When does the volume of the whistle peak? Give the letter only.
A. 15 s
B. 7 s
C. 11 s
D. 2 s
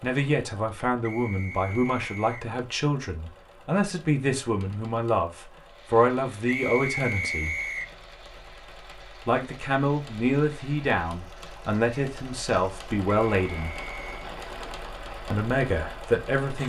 B.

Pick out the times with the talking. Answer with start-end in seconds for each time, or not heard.
0.0-7.5, 9.2-13.7, 15.3-16.6.